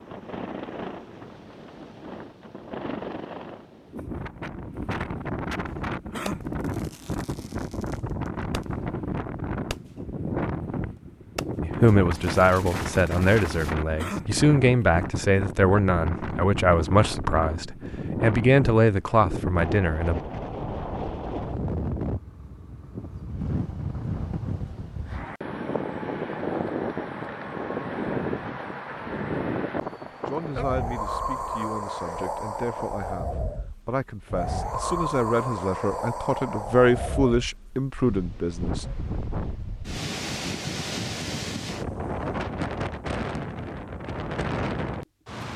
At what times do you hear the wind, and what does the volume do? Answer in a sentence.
The wind can be heard from 0.0 to 45.5 s, at a steady volume.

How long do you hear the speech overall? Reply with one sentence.
The speech can be heard for 17 seconds in total.